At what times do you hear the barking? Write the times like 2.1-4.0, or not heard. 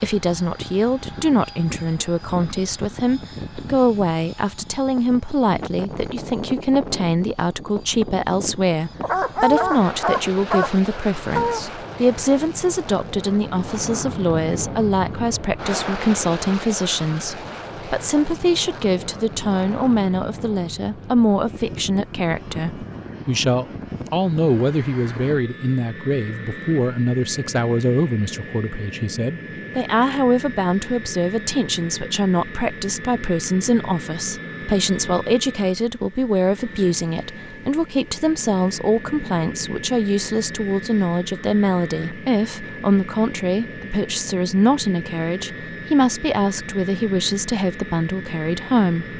9.0-11.6.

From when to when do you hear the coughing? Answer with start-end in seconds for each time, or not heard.
not heard.